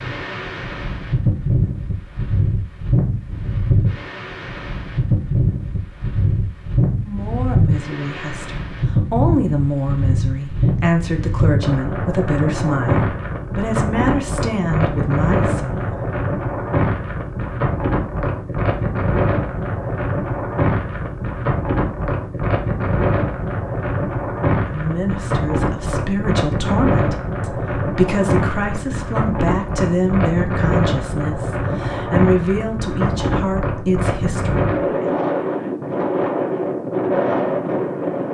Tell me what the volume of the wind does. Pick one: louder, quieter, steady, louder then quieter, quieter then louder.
steady.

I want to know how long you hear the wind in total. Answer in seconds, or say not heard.
38 s.